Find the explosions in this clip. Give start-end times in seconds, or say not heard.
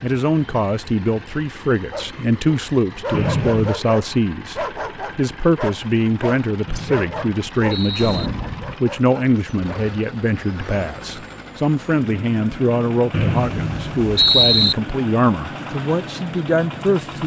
8.0-8.8.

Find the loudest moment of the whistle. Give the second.
14 s.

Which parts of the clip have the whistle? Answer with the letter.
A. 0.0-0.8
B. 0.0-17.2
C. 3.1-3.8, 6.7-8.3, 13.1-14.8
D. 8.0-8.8
C.